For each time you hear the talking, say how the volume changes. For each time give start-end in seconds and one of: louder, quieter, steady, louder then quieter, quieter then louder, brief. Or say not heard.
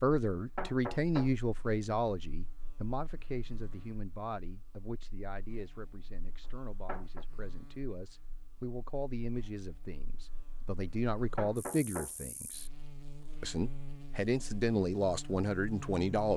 0.0-12.7 quieter then louder
13.4-16.3 brief.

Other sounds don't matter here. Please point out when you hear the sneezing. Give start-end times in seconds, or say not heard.
not heard.